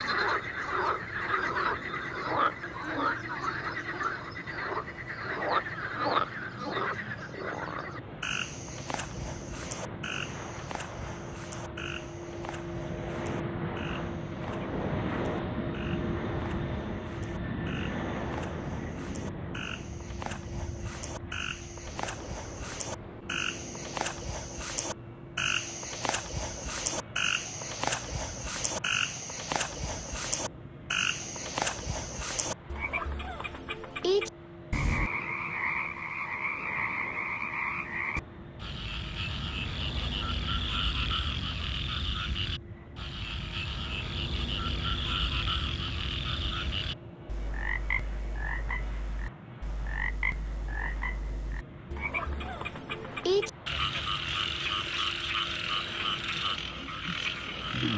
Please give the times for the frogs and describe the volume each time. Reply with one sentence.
You can hear the frogs from 0.0 to 57.9 s, getting quieter then louder.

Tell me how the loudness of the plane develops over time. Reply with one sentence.
The loudness of the plane goes up, then down.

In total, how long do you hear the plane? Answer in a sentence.
You can hear the plane for 58 seconds altogether.